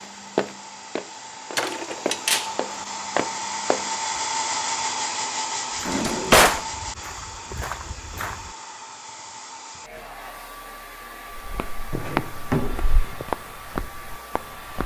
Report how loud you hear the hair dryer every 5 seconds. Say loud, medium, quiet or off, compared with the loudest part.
loud, loud, medium.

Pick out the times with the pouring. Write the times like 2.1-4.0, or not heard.
not heard.